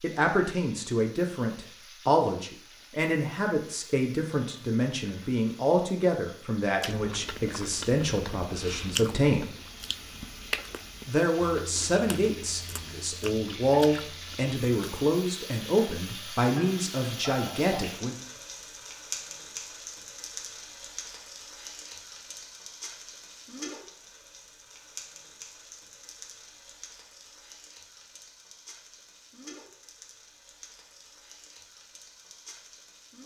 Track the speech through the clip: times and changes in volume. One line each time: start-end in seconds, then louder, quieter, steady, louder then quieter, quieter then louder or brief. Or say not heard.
0.0-9.4 steady
11.1-18.1 steady.